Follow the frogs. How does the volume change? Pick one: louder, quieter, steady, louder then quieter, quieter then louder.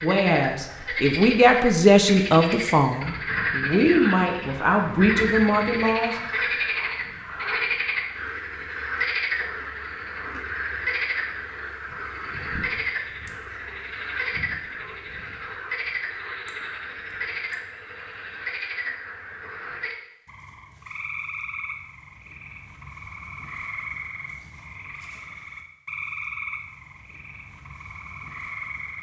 quieter.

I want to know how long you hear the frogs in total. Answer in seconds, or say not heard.
29 s.